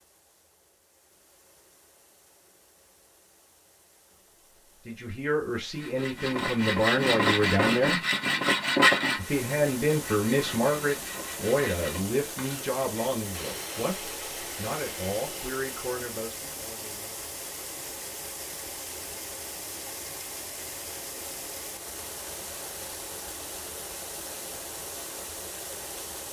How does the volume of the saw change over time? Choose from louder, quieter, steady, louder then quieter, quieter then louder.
quieter.